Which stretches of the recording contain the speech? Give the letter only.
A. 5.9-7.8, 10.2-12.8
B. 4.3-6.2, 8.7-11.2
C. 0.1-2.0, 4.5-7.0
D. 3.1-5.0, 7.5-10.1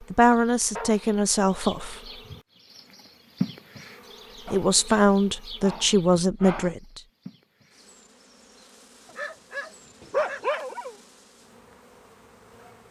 C.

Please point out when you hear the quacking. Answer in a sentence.
The quacking can't be heard in this clip.